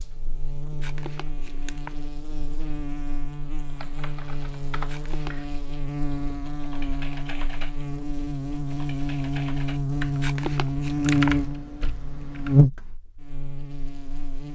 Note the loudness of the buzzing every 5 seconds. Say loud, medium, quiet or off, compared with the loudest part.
quiet, medium, loud.